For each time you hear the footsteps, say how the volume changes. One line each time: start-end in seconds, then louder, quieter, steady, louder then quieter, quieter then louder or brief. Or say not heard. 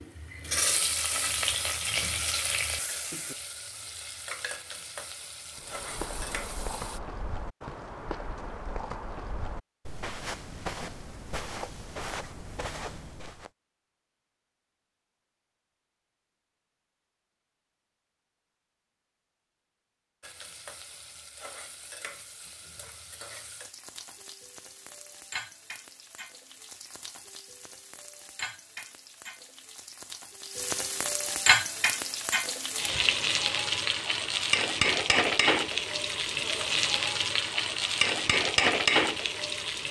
5.5-13.5 steady.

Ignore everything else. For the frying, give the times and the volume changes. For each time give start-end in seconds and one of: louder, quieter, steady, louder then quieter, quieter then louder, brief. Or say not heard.
0.0-7.0 quieter
20.2-39.8 louder.